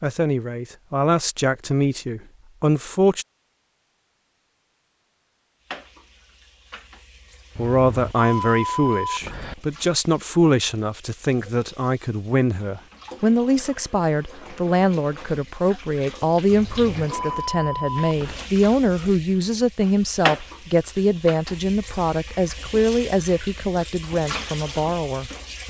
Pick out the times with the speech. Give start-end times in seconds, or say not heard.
0.0-3.2, 7.5-25.6.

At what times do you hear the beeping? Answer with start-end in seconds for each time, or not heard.
7.5-9.6, 16.4-18.4.